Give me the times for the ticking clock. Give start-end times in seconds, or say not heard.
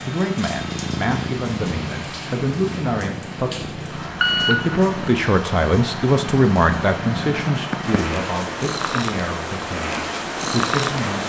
not heard.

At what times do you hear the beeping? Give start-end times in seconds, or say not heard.
4.2-5.1.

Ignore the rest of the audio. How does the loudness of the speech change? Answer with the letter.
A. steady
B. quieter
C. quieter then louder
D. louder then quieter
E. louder
D.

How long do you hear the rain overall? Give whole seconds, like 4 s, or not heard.
11 s.